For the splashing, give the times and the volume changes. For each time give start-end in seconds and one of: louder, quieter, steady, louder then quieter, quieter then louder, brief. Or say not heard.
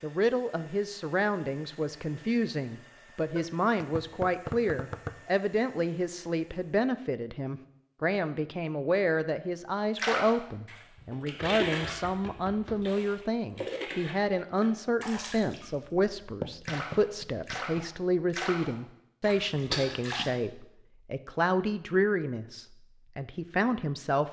9.9-20.3 quieter then louder.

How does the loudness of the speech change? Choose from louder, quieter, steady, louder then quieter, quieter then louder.
steady.